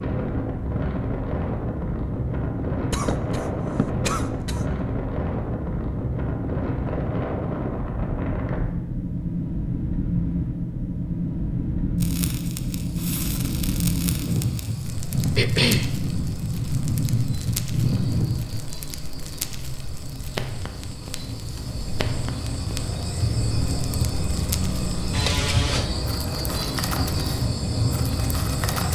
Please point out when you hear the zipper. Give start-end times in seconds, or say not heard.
not heard.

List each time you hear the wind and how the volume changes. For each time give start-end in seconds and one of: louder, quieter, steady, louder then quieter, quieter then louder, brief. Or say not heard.
0.0-18.7 steady.